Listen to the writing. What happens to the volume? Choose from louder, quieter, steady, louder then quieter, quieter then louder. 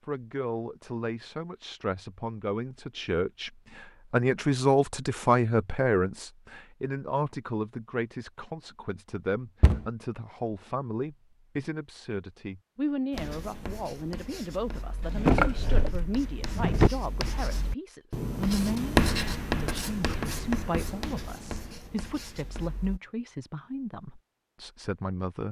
louder then quieter.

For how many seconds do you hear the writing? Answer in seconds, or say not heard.
10 s.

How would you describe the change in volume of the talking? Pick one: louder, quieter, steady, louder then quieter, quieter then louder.
quieter.